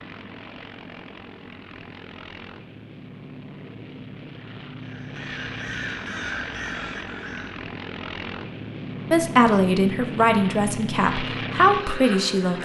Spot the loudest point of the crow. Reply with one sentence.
The volume of the crow peaks at 6 seconds.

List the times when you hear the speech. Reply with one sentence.
You can hear the speech from 9.1 to 12.6 s.